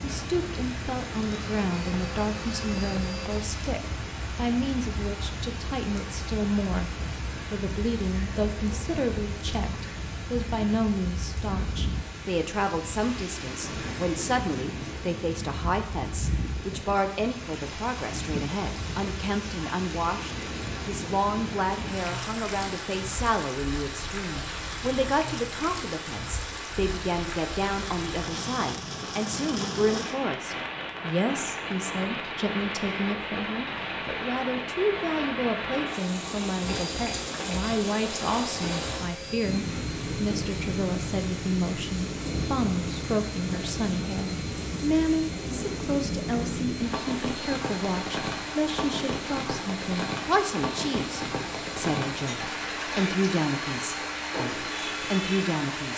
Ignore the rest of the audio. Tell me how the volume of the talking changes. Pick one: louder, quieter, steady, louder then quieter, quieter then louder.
steady.